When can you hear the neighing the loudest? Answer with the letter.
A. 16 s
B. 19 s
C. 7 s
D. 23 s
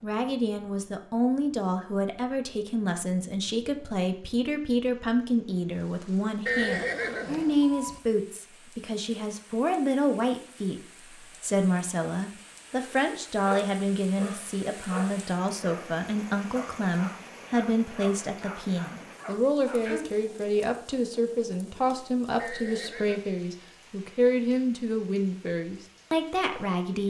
C.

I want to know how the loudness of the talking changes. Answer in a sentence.
The volume of the talking stays about the same.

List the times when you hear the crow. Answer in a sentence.
You can't hear the crow here.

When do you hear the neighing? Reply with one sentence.
The neighing can be heard from 6.5 to 8.0 s and from 22.4 to 23.3 s.